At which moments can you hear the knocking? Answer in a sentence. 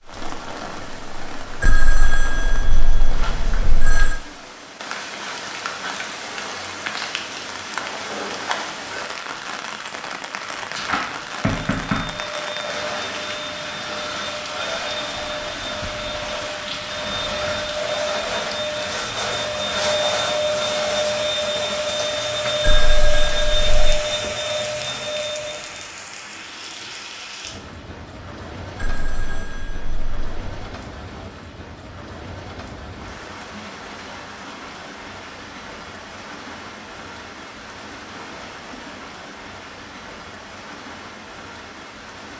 You can hear the knocking from 10.3 to 12.2 s.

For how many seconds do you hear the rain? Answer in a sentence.
You can hear the rain for 42 seconds altogether.